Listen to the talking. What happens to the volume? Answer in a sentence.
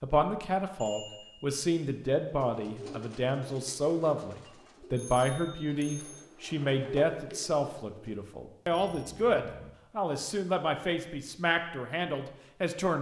The volume of the talking stays about the same.